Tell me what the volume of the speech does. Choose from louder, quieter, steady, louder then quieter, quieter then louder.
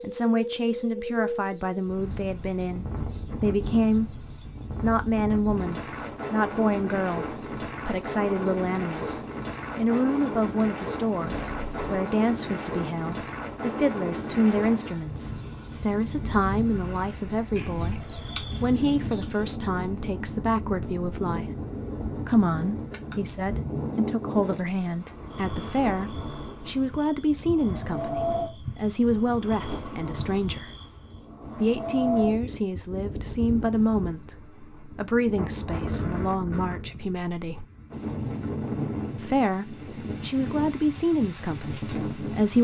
steady.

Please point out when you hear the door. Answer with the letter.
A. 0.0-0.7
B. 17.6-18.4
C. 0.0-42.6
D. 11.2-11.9
D.